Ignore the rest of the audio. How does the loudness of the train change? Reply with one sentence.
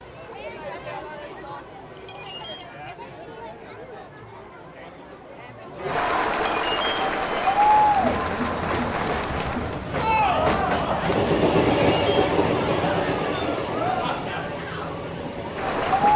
The volume of the train goes up, then down.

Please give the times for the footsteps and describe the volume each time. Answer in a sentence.
You can't hear the footsteps here.